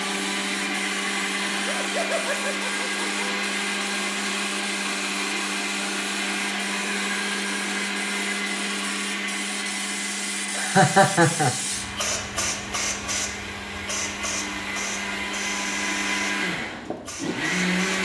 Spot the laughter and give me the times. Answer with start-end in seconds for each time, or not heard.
1.5-3.5, 10.6-11.6.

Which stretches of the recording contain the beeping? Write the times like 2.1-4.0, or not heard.
not heard.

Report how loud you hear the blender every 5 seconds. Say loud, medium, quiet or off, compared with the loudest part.
loud, loud, medium, loud.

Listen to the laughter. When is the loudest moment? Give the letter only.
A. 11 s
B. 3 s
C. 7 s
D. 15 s
A.